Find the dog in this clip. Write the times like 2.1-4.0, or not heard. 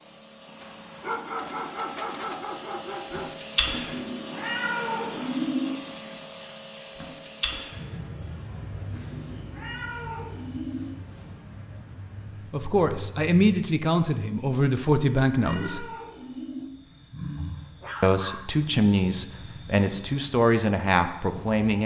0.6-3.4, 17.4-18.6.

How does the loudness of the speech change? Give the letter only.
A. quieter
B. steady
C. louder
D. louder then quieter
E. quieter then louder
B.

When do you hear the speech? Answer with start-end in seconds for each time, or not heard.
12.5-15.8, 18.0-21.8.